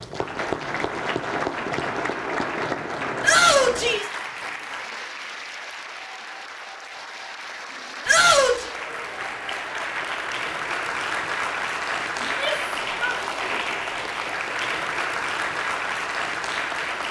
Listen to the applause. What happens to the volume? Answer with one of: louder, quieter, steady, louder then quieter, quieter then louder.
quieter then louder.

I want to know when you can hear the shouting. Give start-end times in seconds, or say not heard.
3.2-4.0, 8.1-8.7, 12.2-13.6.